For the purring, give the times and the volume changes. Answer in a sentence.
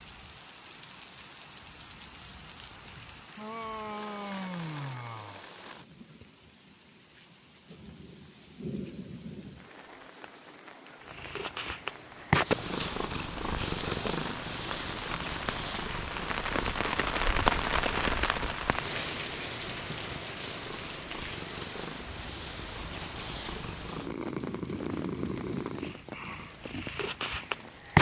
The purring can be heard from 11.0 to 27.9 s, getting quieter then louder.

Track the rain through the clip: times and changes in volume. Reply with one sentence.
The rain can be heard from 0.0 to 27.9 s, getting louder then quieter.